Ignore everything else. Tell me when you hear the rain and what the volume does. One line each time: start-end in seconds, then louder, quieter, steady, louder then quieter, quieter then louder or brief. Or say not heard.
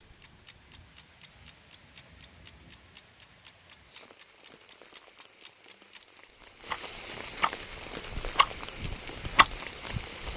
0.0-10.3 louder.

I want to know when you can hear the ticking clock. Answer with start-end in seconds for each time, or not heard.
0.0-10.3.